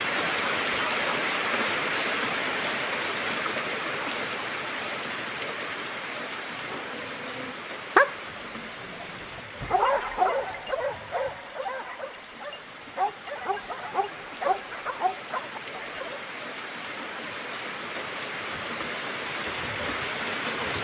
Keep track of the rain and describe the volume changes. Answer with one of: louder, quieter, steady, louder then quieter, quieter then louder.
quieter then louder.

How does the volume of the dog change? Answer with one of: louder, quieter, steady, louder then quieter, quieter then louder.
quieter.